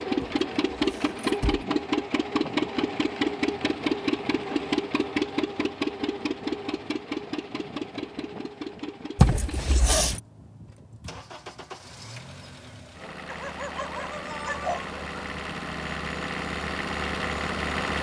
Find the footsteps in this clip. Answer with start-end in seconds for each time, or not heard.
not heard.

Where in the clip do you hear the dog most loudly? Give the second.
15 s.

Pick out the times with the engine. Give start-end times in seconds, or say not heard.
0.0-17.9.